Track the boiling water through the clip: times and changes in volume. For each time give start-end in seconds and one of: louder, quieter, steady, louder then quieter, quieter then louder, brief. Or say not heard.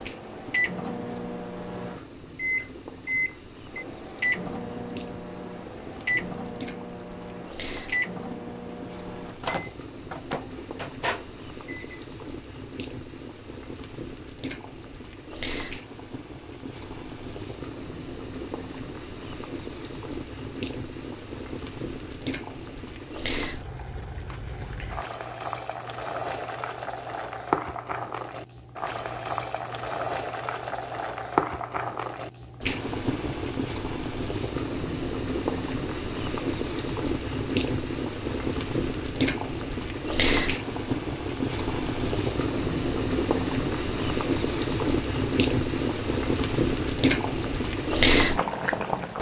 0.0-49.1 louder.